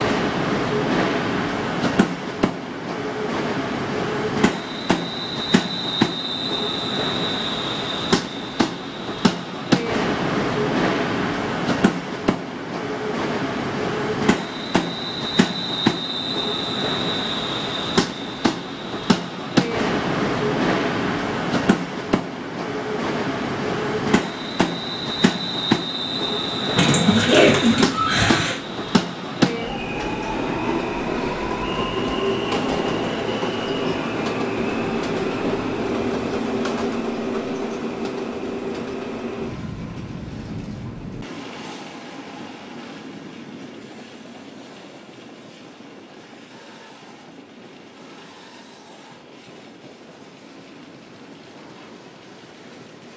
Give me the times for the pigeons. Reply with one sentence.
The pigeons can be heard from 26.8 to 28.6 s.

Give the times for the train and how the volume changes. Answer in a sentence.
You can hear the train from 0.0 to 53.1 s, getting quieter.